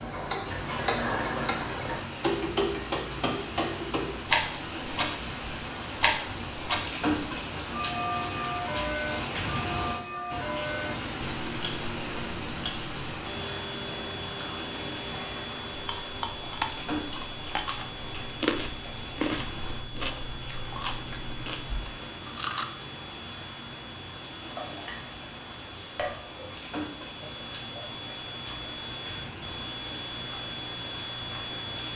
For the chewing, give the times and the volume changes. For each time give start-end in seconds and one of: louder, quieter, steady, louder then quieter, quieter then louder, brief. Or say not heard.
15.7-22.6 quieter.